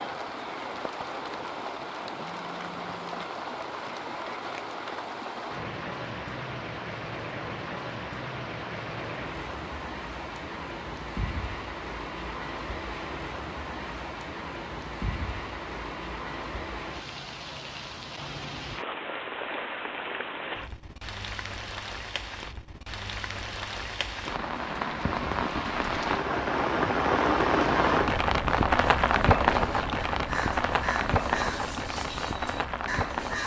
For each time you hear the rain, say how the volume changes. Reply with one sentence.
You can hear the rain from 0.0 to 33.4 s, getting louder.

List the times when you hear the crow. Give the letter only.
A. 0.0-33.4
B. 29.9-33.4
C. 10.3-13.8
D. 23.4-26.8
B.